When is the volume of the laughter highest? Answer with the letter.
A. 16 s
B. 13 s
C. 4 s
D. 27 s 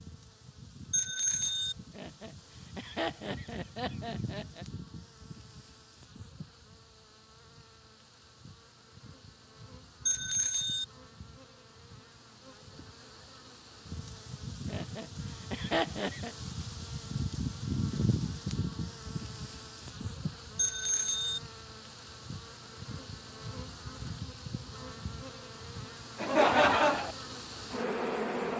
D.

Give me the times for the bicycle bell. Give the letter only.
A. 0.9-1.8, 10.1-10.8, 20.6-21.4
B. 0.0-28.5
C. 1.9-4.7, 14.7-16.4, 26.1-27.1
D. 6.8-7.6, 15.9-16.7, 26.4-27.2
A.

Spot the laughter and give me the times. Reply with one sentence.
The laughter can be heard from 1.9 to 4.7 s, from 14.7 to 16.4 s and from 26.1 to 27.1 s.